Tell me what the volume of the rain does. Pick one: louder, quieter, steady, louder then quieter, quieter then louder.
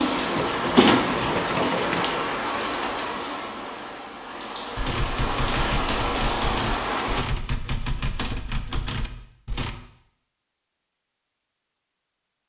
quieter then louder.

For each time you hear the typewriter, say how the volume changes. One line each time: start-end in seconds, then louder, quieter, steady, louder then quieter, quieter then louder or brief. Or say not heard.
4.8-9.8 steady.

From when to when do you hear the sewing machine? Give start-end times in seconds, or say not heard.
0.0-2.2.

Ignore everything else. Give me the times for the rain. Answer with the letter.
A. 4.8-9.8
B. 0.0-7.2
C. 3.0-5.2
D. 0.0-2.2
B.